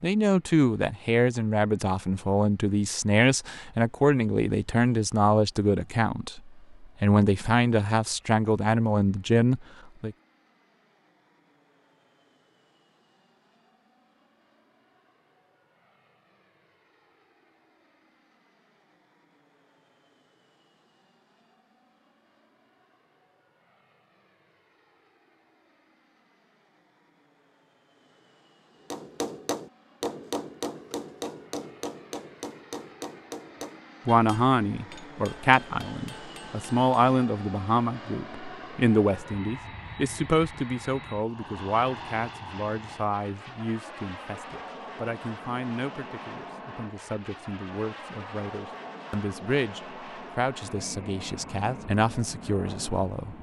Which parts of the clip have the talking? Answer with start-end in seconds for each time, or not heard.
0.0-10.2, 34.0-53.3.